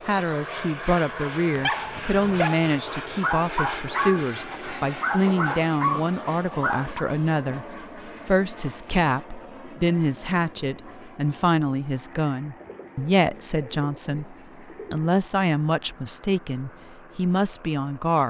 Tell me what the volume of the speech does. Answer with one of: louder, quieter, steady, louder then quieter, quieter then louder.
steady.